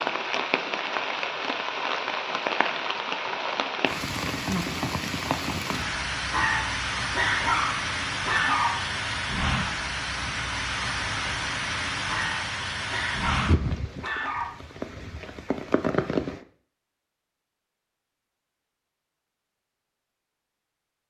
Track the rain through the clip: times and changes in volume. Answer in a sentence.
The rain can be heard from 0.0 to 16.4 s, at a steady volume.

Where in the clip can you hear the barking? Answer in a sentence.
The barking can be heard from 6.3 to 8.9 s and from 12.1 to 14.5 s.